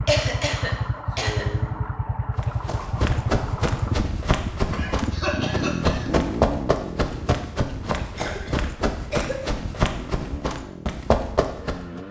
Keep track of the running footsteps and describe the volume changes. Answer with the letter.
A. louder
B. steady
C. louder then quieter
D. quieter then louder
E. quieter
B.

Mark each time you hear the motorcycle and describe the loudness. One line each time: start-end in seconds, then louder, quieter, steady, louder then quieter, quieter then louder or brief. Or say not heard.
0.0-12.0 quieter.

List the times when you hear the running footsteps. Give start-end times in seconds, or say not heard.
2.4-12.0.